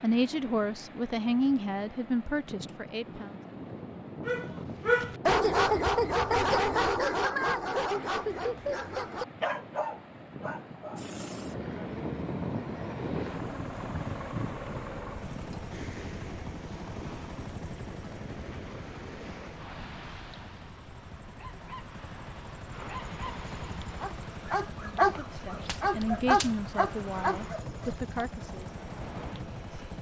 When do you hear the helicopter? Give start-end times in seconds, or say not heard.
10.9-29.9.